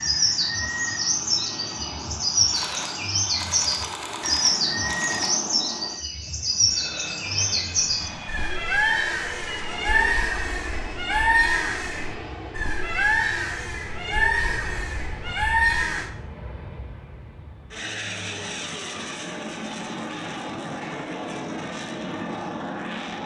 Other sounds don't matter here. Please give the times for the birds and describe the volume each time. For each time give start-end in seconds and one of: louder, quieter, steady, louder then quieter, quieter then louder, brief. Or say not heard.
0.0-16.1 steady.